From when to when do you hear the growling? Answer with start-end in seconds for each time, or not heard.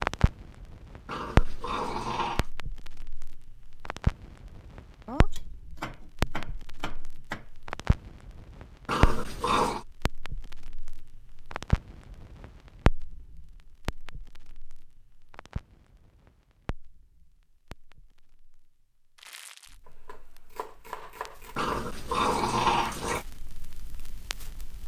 1.1-2.5, 8.8-9.8, 21.6-23.2.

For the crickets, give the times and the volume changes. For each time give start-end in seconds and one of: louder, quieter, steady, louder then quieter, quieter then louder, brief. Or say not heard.
not heard.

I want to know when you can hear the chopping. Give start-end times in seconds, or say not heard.
5.0-7.5, 19.9-21.9.